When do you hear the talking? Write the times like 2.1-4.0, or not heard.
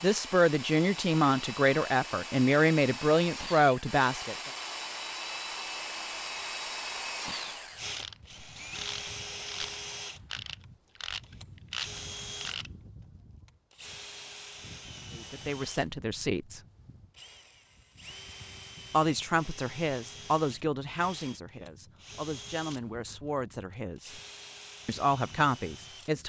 0.0-4.3, 15.2-16.6, 18.9-24.1, 24.9-26.2.